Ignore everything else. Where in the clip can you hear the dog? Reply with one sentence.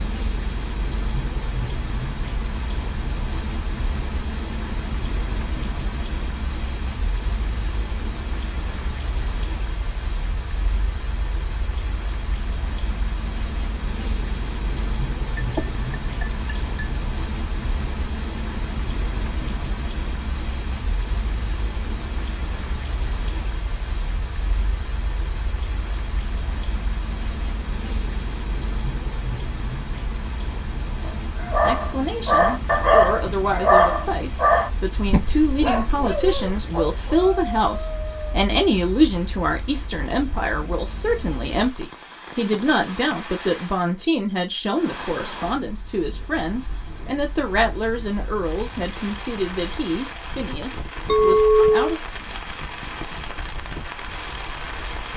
You can hear the dog from 31.0 to 38.4 s.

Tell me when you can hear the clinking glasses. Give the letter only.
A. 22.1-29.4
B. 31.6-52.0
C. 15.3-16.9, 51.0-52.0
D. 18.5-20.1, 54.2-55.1
C.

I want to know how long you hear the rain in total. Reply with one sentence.
You can hear the rain for 55 seconds altogether.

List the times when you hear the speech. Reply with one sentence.
The speech can be heard from 31.6 to 52.0 s.